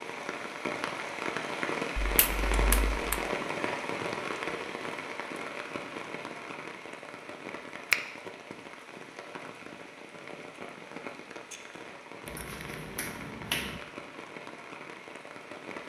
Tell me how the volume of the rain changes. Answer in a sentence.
The volume of the rain goes down.